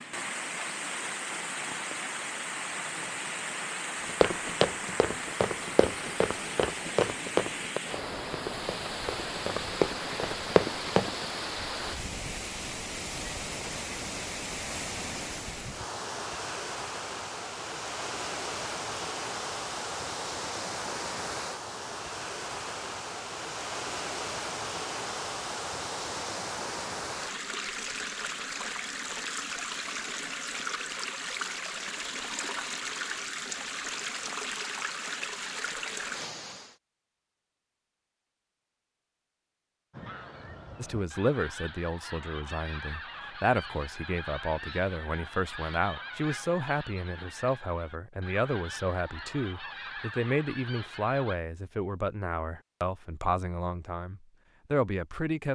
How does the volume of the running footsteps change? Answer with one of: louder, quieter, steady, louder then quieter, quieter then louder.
quieter then louder.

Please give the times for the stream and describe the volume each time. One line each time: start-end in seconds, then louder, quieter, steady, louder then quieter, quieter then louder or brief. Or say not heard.
0.0-36.8 steady.